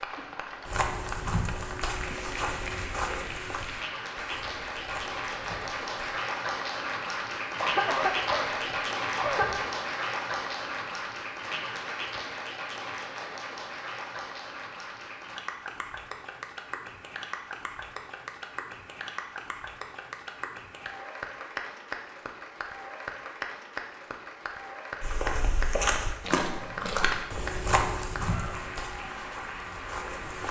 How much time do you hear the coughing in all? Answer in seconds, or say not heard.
2 s.